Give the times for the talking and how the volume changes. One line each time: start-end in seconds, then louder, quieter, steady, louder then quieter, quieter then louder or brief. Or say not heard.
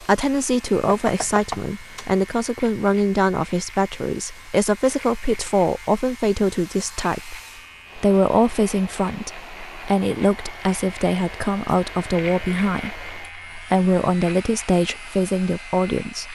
0.0-7.3 steady
8.0-16.3 steady.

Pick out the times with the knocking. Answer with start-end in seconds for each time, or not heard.
0.8-2.1.